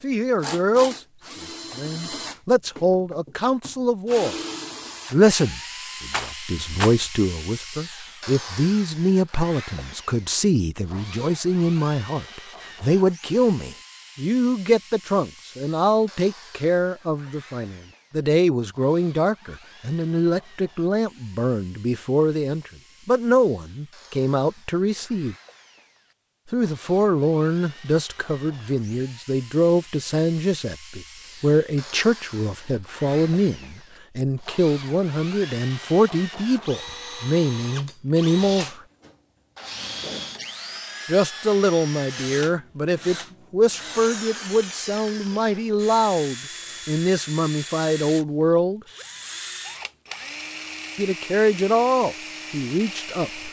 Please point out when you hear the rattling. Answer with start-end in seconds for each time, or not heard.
6.1-7.0.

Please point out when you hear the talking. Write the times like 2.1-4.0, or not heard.
0.0-1.0, 1.8-4.3, 5.1-25.4, 26.5-38.8, 41.0-48.8, 51.0-53.4.